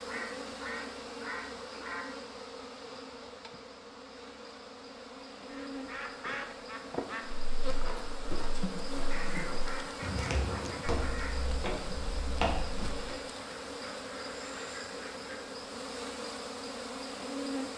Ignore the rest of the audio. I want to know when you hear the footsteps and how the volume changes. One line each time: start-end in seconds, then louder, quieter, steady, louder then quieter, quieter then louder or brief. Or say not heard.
7.3-13.2 louder.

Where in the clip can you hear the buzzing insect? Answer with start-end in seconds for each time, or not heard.
0.0-17.7.